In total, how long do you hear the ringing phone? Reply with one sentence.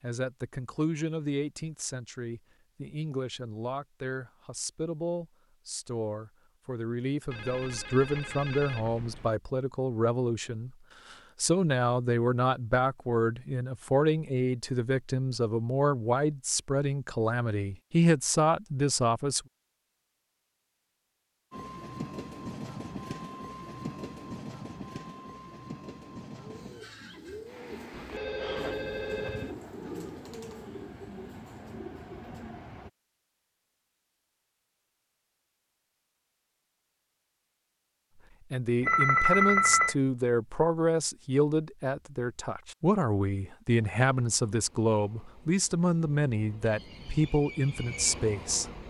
The ringing phone can be heard for 5 seconds in total.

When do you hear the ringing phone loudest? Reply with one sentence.
The loudest moment of the ringing phone is at 39 seconds.